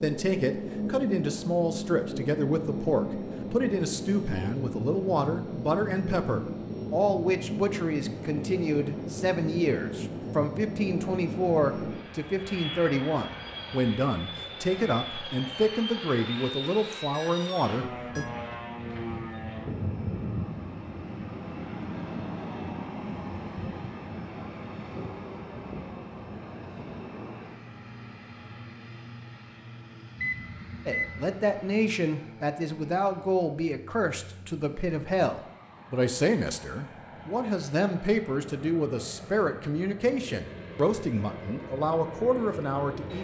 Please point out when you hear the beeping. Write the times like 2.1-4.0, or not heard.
17.0-18.2, 30.1-31.3.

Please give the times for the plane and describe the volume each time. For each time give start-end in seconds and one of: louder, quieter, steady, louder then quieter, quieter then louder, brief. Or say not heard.
0.0-43.1 quieter.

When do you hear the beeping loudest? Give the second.
31 s.